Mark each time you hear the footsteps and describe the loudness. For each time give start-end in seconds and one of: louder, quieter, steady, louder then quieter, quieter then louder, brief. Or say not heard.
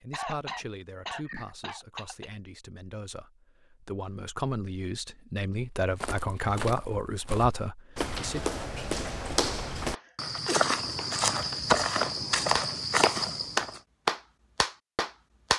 5.8-13.8 louder.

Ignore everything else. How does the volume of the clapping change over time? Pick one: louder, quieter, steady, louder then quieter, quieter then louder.
louder then quieter.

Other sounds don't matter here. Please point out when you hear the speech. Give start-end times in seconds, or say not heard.
0.0-8.4.